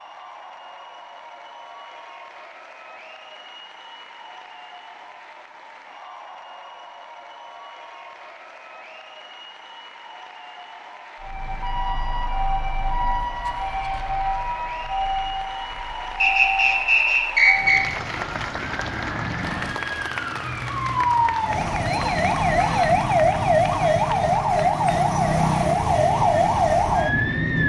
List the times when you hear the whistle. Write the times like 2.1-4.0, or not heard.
16.2-17.8.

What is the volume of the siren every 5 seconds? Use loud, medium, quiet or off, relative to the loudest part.
off, off, medium, medium, loud, loud.